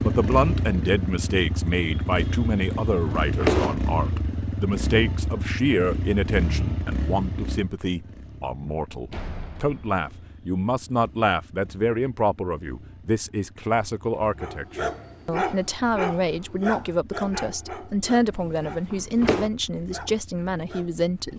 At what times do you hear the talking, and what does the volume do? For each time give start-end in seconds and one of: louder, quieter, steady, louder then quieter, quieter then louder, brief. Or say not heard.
0.0-21.3 steady.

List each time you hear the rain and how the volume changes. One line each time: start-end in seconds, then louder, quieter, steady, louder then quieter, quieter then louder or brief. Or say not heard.
not heard.